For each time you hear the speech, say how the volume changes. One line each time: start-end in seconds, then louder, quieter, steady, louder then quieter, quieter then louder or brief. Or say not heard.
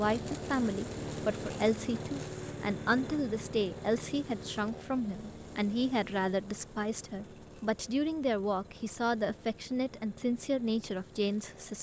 0.0-11.7 steady.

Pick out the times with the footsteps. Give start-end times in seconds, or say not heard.
not heard.